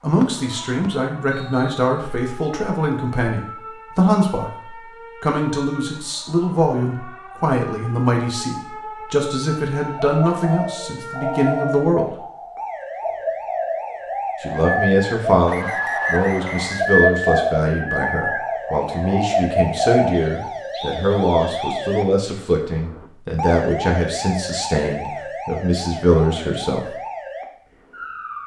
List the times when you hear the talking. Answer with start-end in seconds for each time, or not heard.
0.0-12.1, 14.4-26.8.